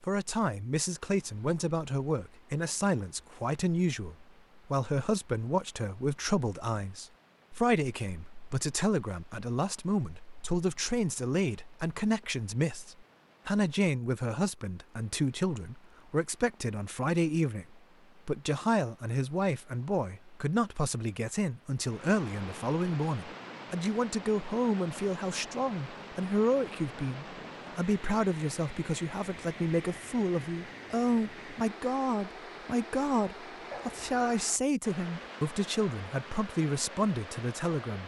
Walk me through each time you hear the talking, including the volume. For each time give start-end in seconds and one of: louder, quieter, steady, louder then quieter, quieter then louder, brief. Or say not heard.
0.0-38.0 steady.